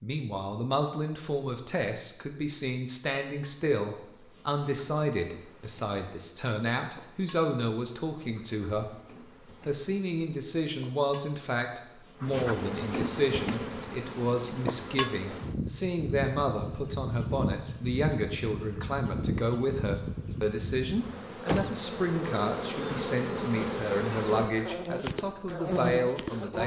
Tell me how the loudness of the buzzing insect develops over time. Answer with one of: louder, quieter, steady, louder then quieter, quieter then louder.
louder.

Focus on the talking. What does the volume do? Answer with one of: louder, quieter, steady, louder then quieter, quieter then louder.
steady.